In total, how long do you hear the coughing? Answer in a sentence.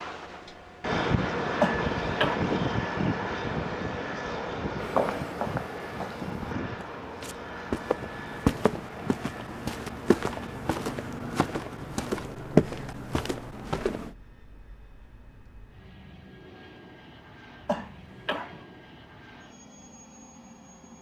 The coughing can be heard for 2 seconds in total.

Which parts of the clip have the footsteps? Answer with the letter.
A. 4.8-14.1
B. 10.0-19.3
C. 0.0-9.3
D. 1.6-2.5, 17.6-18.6
A.